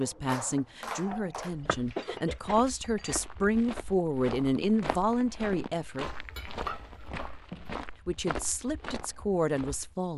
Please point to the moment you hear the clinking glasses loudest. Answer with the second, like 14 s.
7 s.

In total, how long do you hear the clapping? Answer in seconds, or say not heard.
2 s.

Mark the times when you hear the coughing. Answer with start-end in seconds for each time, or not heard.
1.9-2.6, 6.0-7.5.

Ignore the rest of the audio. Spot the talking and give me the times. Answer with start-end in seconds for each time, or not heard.
0.0-6.0, 8.1-10.1.